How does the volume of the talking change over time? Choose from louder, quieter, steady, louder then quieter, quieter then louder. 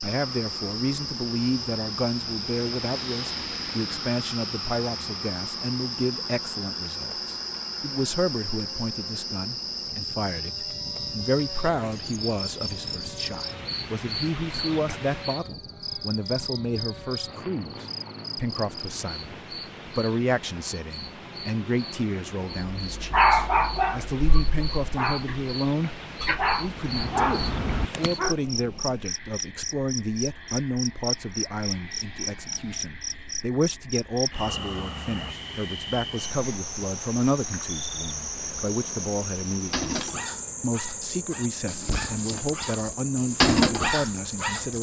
steady.